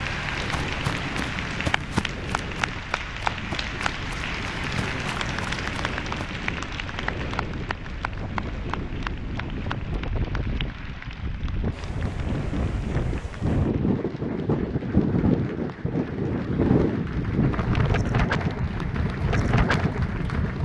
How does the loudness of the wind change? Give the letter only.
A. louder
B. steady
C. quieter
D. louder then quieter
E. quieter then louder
A.